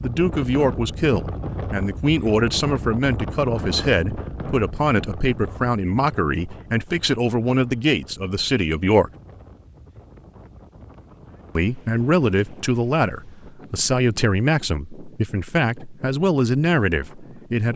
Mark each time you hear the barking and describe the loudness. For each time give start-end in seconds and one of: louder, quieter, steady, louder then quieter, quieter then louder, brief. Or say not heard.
not heard.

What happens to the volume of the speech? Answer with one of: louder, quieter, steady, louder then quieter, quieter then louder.
steady.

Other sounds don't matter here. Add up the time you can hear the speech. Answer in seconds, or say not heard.
15 s.